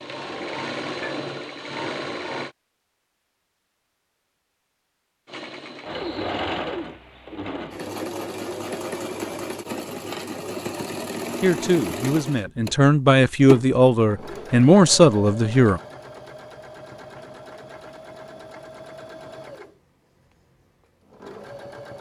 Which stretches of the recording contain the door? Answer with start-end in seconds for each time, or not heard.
not heard.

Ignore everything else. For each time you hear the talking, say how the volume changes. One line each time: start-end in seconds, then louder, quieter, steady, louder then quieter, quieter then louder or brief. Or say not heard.
11.4-15.8 louder.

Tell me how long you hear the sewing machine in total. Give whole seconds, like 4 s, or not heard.
19 s.